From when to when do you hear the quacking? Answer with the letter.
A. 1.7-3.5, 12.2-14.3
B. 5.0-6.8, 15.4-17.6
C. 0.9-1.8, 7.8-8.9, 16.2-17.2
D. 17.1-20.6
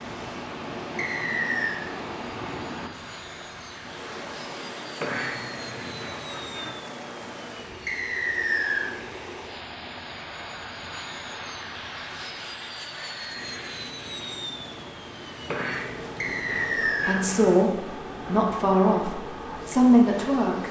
B.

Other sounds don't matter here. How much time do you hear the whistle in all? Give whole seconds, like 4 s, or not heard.
3 s.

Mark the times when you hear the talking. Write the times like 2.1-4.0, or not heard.
17.1-20.6.